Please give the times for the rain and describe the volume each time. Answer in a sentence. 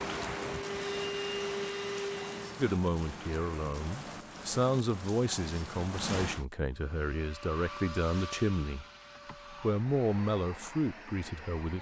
The rain can be heard from 0.0 to 6.5 s, at a steady volume.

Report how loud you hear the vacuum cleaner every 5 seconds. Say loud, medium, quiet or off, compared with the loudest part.
loud, medium, medium.